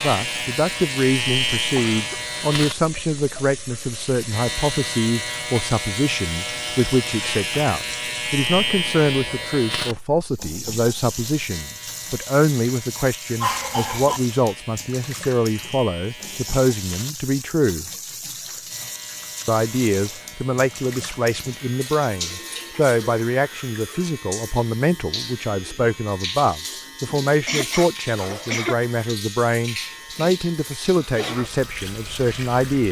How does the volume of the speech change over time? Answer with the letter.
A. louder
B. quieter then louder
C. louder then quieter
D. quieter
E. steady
E.